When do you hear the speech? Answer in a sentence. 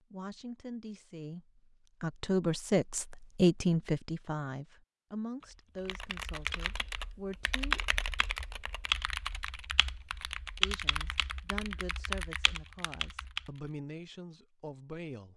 The speech can be heard from 0.1 to 7.8 s and from 10.6 to 15.3 s.